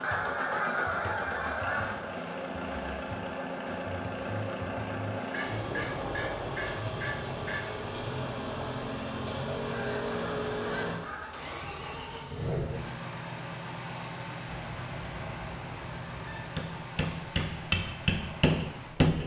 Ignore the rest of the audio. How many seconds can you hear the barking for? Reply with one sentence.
You can't hear the barking here.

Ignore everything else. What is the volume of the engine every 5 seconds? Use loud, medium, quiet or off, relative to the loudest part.
loud, loud, loud, medium.